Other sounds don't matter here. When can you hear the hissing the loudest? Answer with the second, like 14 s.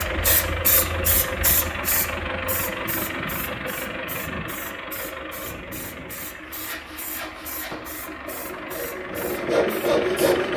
1 s.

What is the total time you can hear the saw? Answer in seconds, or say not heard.
4 s.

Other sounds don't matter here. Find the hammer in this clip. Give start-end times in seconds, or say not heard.
not heard.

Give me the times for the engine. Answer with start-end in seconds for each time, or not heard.
0.0-10.5.